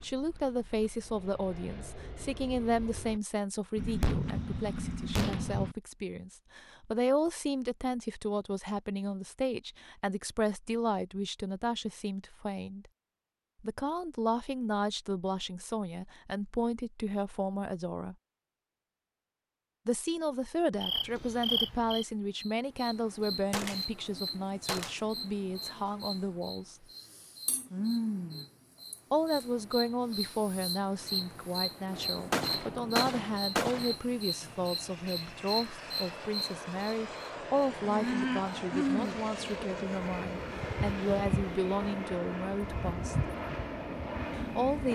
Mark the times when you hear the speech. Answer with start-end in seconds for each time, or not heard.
0.0-12.9, 13.6-18.1, 19.9-26.8, 29.1-43.1, 44.4-44.9.